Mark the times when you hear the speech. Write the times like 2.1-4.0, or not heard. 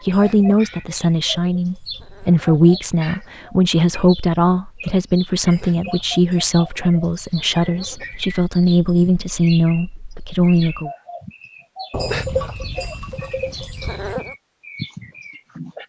0.0-10.9.